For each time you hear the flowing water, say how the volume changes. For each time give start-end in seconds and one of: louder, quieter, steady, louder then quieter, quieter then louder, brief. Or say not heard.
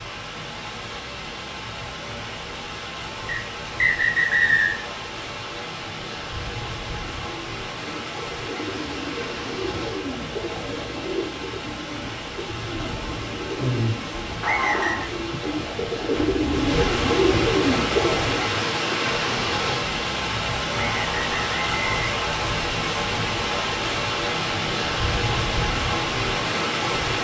0.0-27.1 louder.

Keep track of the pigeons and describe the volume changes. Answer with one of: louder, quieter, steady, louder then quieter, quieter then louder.
louder.